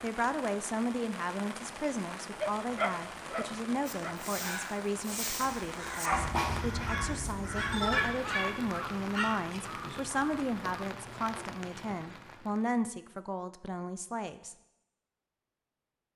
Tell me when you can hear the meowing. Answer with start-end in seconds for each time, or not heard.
7.2-8.0.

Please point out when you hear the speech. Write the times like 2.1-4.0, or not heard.
0.0-14.6.